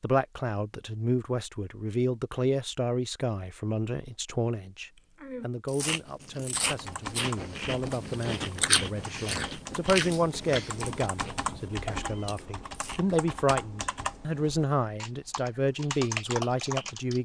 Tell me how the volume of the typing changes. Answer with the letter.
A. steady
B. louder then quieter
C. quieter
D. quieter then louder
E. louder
E.